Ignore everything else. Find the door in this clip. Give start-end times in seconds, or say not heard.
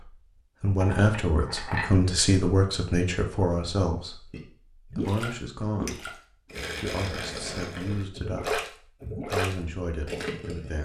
not heard.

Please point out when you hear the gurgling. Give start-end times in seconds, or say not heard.
4.3-10.8.